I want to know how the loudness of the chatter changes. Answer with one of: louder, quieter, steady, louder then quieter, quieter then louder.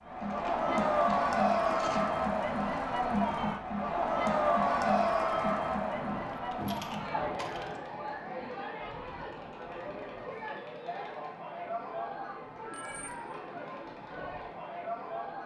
quieter.